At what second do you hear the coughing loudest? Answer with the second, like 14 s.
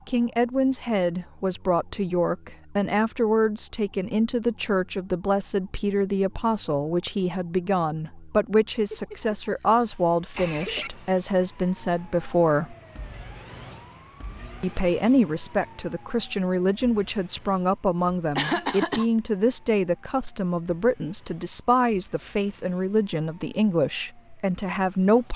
19 s.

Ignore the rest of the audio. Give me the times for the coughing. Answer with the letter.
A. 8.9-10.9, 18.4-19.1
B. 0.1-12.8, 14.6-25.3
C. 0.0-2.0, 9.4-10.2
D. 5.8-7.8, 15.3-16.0
A.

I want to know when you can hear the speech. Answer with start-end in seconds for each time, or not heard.
0.1-12.8, 14.6-25.3.